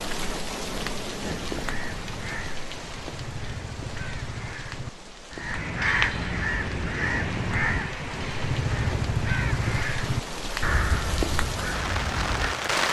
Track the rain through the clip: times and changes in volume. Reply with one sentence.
The rain can be heard from 0.0 to 12.8 s, getting quieter then louder.